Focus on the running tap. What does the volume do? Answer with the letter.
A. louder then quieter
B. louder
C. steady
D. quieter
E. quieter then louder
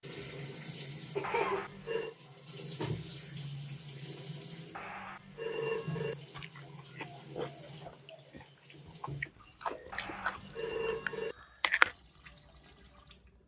D.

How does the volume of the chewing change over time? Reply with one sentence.
The loudness of the chewing goes down, then up.